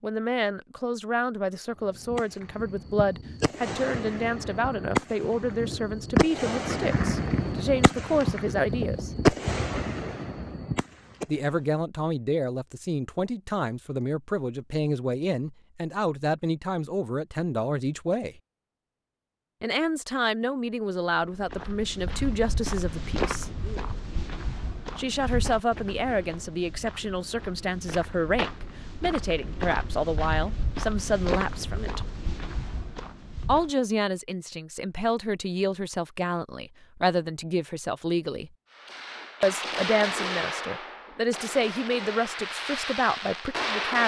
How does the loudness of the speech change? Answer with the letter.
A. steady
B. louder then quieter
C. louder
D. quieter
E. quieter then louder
A.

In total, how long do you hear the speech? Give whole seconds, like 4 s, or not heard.
37 s.